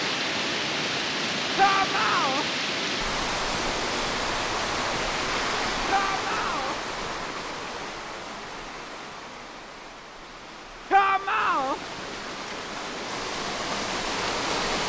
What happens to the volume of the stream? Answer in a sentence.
The loudness of the stream goes down, then up.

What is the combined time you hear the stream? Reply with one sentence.
You can hear the stream for 15 seconds altogether.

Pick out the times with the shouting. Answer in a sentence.
The shouting can be heard from 1.6 to 2.5 s, from 5.8 to 6.8 s and from 10.9 to 11.8 s.